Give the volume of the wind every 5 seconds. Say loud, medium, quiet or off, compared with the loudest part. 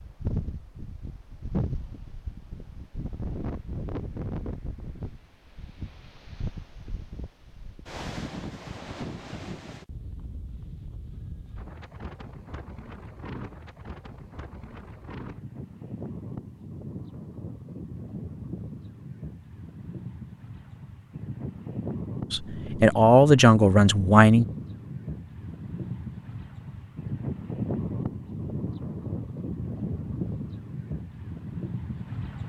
loud, medium, medium, medium, loud, loud, loud.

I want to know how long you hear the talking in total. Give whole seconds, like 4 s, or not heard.
2 s.